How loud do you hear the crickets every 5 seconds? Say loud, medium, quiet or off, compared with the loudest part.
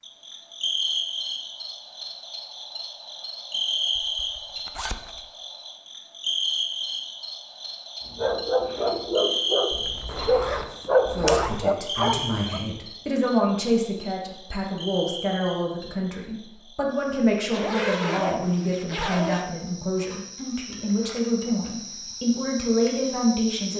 loud, loud, medium, quiet, medium.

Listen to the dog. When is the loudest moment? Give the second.
11 s.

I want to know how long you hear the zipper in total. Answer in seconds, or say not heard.
5 s.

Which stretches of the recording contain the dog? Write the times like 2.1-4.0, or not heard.
8.1-12.6.